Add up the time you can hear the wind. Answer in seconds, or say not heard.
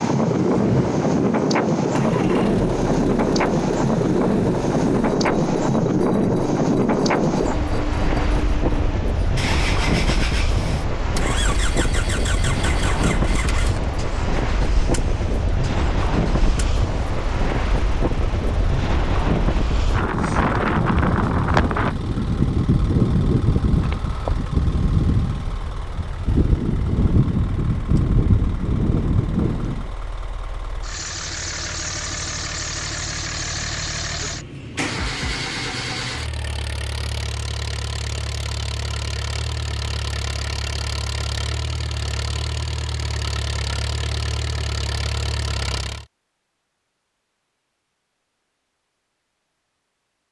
30 s.